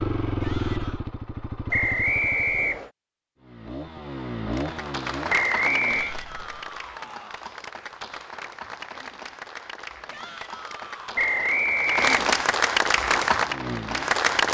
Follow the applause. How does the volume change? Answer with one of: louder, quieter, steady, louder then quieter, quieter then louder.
quieter then louder.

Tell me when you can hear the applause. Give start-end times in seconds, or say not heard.
4.5-14.4.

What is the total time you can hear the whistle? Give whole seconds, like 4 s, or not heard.
3 s.